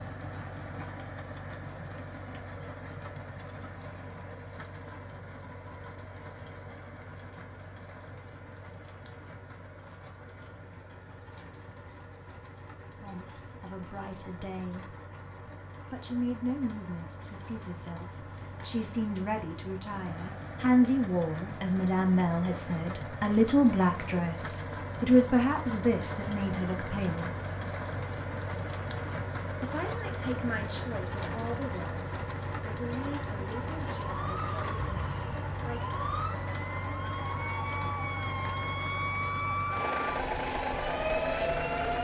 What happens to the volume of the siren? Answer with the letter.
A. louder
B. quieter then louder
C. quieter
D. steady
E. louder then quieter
A.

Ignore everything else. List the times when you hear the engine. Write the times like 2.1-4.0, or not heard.
0.0-41.9.